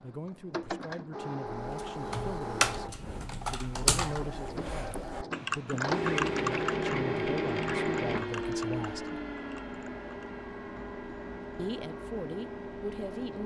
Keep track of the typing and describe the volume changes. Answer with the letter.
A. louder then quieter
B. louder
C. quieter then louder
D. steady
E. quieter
E.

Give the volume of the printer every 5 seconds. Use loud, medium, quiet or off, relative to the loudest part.
medium, loud, medium.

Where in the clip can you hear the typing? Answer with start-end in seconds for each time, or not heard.
1.5-10.3.